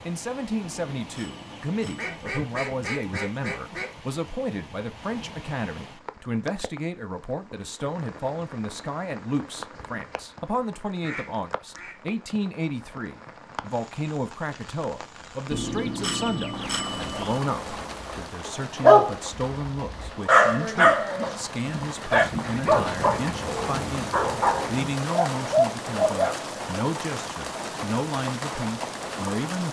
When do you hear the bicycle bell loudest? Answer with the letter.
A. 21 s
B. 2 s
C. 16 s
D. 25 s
C.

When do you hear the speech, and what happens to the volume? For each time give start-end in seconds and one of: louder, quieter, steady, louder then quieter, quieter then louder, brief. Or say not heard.
0.1-29.6 steady.